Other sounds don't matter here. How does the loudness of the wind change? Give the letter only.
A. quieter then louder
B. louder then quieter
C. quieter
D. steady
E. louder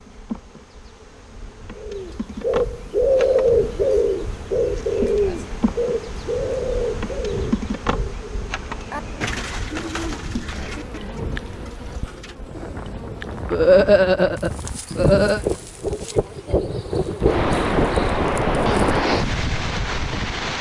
E.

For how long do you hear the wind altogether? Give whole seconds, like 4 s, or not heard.
17 s.